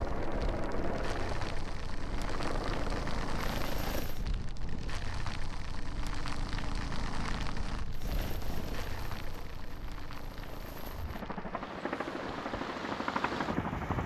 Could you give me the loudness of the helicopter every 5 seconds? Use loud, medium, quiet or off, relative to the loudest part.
loud, medium, loud.